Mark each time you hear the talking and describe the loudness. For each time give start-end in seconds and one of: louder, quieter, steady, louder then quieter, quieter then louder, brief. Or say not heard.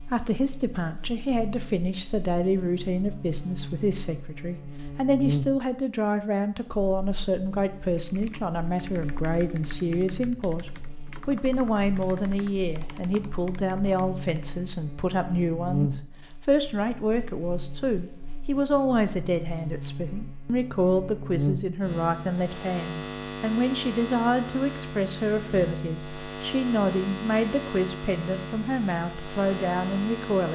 0.0-30.5 steady.